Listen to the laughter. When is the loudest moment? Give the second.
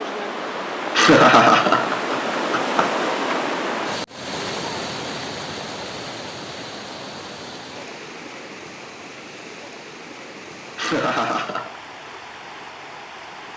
1 s.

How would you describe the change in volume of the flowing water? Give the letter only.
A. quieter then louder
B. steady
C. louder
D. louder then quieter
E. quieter
E.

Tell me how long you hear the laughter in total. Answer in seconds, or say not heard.
3 s.